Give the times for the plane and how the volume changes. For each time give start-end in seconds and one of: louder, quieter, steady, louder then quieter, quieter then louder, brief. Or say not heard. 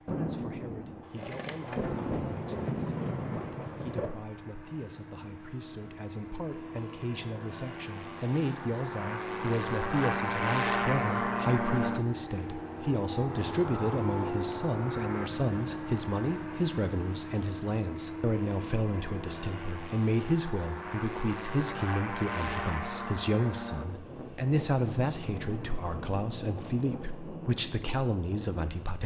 0.0-29.0 louder then quieter.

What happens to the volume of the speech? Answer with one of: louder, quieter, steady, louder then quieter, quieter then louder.
louder.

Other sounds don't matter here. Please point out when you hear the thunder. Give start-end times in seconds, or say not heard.
0.1-4.2, 24.8-26.8.